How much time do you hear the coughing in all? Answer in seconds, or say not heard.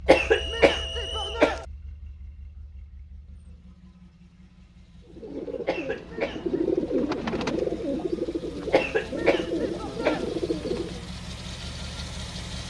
4 s.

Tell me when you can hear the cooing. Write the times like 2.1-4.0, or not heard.
5.0-11.1.